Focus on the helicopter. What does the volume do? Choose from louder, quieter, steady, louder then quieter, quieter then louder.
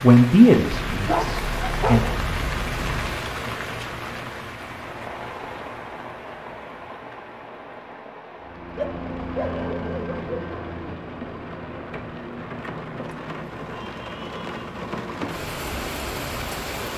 quieter.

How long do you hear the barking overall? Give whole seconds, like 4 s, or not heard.
4 s.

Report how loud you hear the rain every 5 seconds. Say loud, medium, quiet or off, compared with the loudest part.
loud, medium, medium, loud.